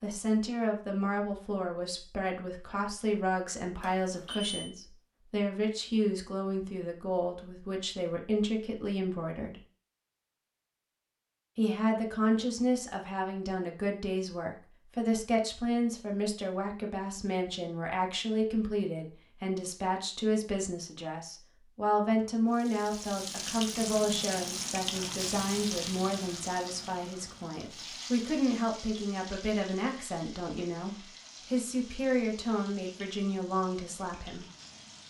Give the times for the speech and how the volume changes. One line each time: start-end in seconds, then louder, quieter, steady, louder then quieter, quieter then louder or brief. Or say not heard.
0.0-9.6 steady
11.6-34.5 steady.